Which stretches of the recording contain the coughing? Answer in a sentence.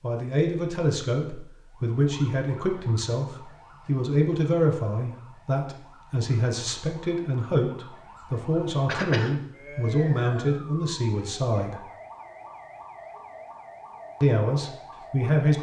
The coughing can be heard from 8.8 to 9.3 s.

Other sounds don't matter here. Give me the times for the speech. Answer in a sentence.
The speech can be heard from 0.0 to 11.8 s and from 14.2 to 15.5 s.